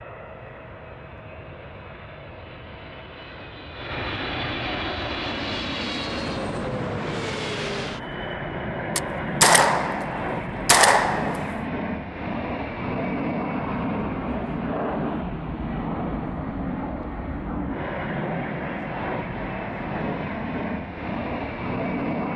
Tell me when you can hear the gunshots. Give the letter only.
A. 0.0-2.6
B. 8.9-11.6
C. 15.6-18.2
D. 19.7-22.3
B.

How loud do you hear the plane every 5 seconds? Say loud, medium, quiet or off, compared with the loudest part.
medium, loud, loud, loud, loud.